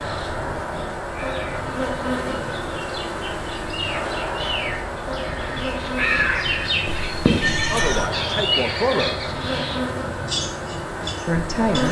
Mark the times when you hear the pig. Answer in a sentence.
The pig can't be heard in this clip.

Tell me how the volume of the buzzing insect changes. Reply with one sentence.
The loudness of the buzzing insect stays about the same.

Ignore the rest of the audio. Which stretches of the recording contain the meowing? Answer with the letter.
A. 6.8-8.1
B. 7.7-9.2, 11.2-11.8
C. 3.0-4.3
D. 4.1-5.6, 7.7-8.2
A.